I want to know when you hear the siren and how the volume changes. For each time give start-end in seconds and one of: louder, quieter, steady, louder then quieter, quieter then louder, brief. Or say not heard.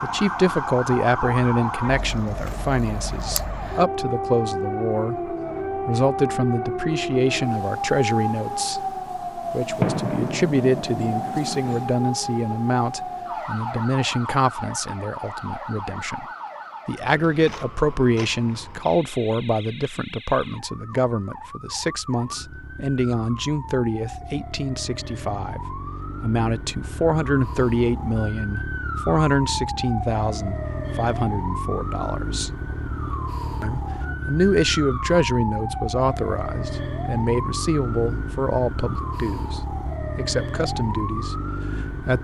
0.0-42.1 quieter then louder.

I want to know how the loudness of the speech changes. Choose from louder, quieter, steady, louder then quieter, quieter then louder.
steady.